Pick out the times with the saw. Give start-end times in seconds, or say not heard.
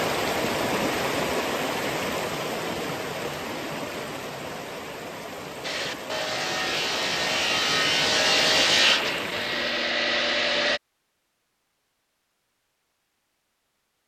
5.6-10.8.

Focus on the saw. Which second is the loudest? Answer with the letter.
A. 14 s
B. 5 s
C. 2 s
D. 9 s
D.